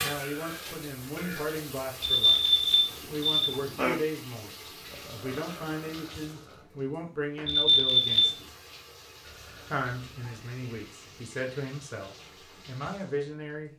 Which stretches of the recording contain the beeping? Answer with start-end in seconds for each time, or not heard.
2.0-4.0, 7.5-8.3.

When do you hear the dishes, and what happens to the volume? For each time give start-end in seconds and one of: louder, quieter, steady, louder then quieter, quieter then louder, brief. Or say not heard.
not heard.